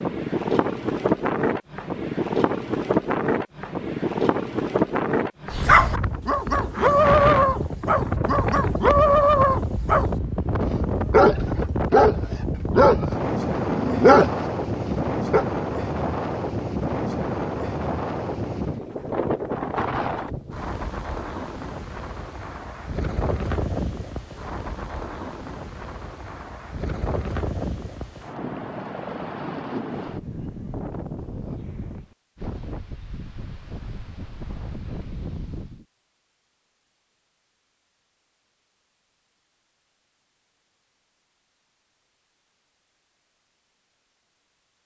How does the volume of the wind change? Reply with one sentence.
The loudness of the wind goes down.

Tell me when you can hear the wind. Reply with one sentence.
The wind can be heard from 0.0 to 35.9 s.